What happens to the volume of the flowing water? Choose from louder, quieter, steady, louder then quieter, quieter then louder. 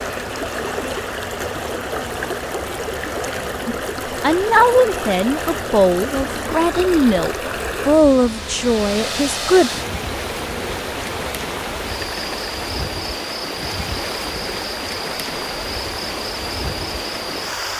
steady.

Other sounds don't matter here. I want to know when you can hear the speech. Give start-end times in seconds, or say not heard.
3.6-9.7.